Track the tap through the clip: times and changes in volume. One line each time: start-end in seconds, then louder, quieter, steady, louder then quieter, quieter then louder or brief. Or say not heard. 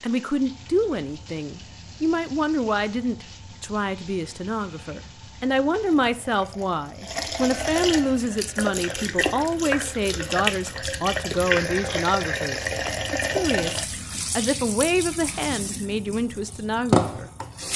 0.0-17.7 louder.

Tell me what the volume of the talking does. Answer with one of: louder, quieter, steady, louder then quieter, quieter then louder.
steady.